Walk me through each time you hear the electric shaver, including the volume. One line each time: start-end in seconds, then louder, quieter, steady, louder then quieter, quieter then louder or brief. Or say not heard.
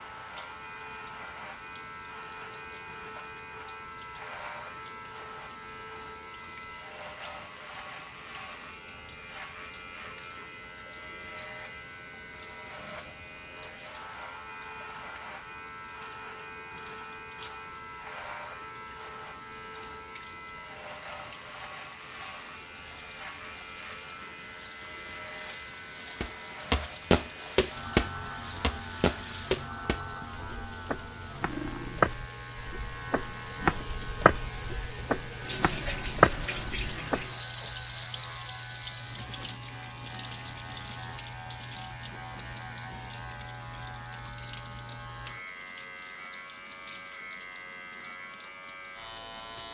0.0-49.6 steady.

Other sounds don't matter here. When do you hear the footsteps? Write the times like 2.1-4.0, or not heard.
26.2-37.2.